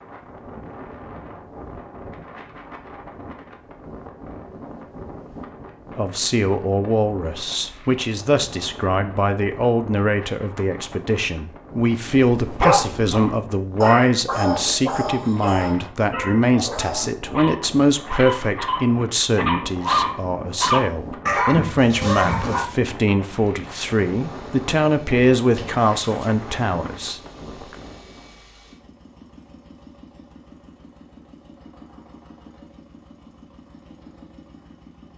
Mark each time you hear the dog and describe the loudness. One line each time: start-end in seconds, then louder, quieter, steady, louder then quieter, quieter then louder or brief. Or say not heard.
12.2-22.6 quieter then louder.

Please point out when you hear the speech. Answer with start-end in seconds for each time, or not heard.
6.0-27.8.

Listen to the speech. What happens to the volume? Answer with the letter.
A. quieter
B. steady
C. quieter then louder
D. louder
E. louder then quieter
B.